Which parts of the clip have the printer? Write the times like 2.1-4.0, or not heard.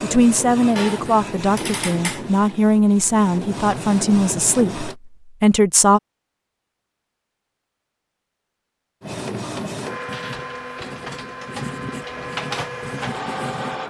0.0-5.0, 9.0-13.8.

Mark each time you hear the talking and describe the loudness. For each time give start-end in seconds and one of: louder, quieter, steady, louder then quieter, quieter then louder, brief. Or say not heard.
0.0-6.0 steady.